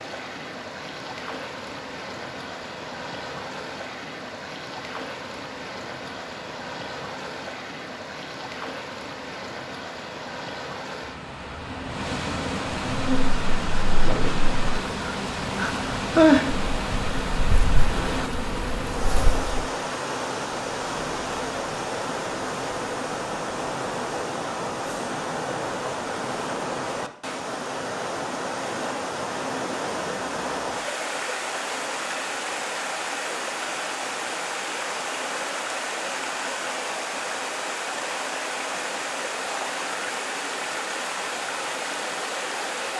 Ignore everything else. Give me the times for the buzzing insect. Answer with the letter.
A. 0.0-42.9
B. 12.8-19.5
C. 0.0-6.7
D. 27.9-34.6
B.